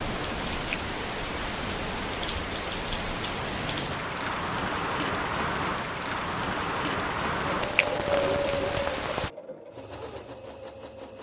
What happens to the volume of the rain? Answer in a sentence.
The volume of the rain stays about the same.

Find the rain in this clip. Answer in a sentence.
The rain can be heard from 0.0 to 9.3 s.